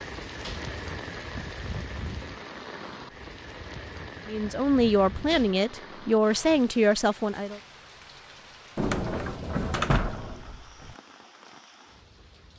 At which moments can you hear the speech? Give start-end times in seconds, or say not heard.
4.2-7.6.